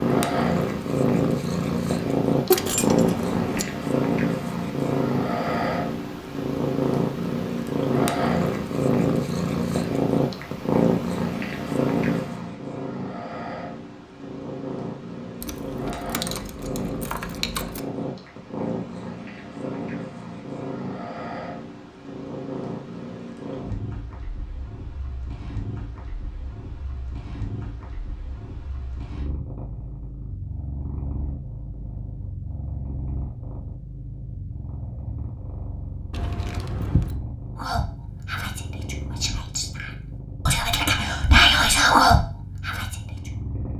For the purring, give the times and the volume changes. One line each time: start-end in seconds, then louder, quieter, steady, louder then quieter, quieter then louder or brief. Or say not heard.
0.0-43.7 quieter.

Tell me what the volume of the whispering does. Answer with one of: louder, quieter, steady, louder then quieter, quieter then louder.
louder.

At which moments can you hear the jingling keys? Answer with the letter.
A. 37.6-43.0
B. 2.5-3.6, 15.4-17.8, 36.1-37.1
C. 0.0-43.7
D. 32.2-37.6
B.